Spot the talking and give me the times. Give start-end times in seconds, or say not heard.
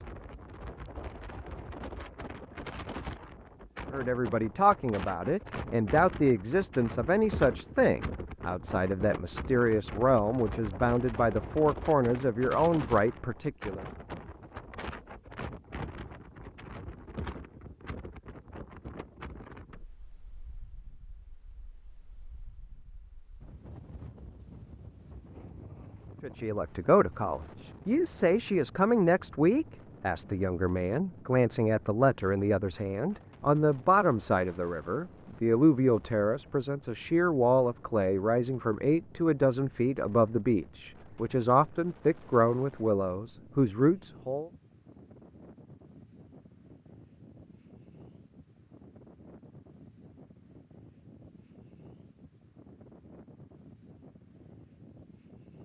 3.9-13.8, 26.2-44.5.